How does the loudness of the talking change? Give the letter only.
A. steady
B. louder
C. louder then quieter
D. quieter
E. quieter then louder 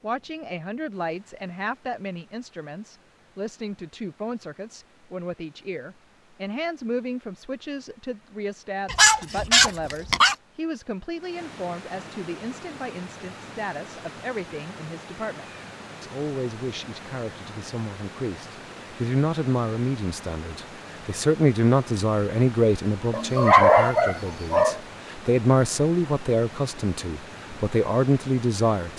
B.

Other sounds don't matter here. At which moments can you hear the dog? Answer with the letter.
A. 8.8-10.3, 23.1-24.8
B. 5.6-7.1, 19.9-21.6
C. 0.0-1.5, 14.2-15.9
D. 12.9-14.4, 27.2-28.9
A.